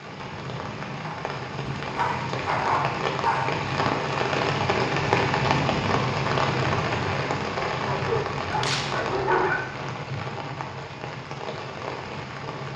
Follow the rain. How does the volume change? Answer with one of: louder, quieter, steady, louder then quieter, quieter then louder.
louder then quieter.